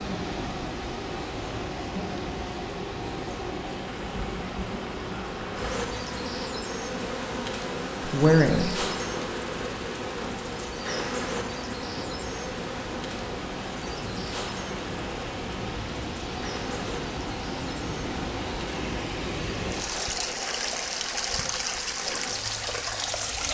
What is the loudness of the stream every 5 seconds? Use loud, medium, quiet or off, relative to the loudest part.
medium, medium, medium, loud, loud.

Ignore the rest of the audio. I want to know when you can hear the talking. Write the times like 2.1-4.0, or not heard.
8.1-8.8.